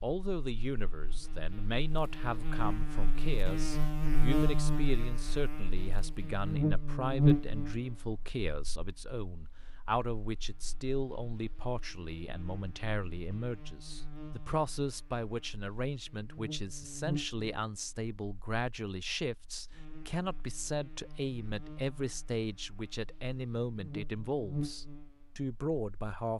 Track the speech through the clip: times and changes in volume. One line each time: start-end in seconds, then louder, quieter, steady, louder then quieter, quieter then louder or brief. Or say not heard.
0.0-26.3 steady.